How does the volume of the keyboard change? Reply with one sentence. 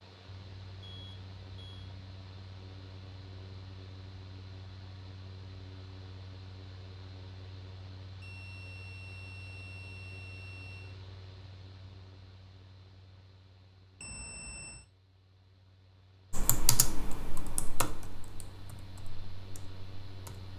The loudness of the keyboard goes down.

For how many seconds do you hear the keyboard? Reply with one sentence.
You can hear the keyboard for 4 seconds altogether.